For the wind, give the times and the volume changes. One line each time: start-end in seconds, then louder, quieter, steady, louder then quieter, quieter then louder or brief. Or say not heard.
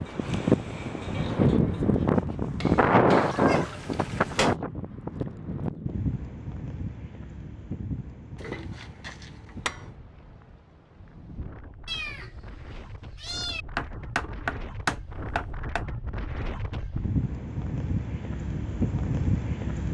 0.0-19.8 quieter then louder.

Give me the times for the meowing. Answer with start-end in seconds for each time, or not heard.
3.0-4.5, 11.8-13.7.